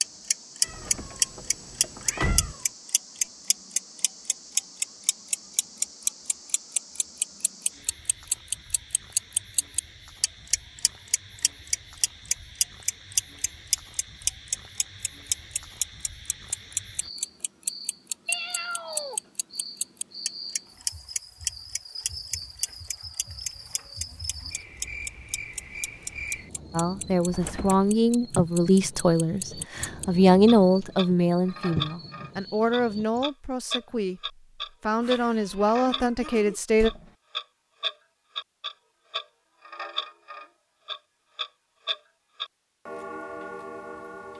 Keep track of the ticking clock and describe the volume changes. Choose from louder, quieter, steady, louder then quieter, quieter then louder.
quieter.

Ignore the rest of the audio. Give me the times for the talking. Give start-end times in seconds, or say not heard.
26.7-36.9.